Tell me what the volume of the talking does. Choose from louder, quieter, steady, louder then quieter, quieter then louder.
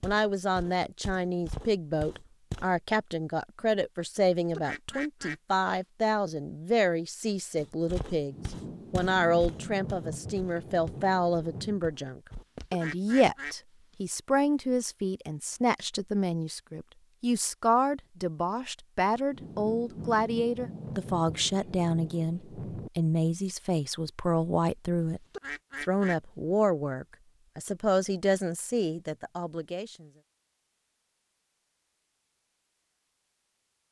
steady.